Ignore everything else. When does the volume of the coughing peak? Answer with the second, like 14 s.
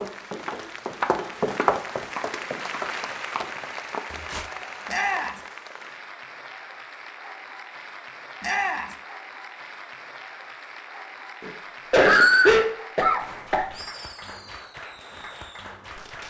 12 s.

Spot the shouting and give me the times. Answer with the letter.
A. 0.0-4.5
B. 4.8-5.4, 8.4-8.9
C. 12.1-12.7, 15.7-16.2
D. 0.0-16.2
B.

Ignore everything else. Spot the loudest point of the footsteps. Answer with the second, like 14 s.
2 s.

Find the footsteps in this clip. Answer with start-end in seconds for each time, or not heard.
0.0-4.5.